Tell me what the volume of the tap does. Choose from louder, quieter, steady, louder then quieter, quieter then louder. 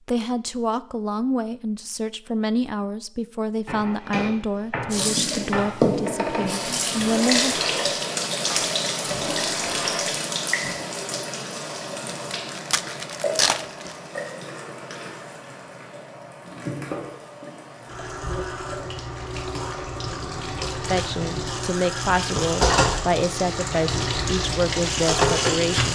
quieter then louder.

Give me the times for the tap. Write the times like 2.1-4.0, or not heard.
4.9-25.9.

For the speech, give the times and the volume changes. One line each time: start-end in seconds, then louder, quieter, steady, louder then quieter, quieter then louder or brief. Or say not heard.
0.1-7.6 steady
20.9-25.9 steady.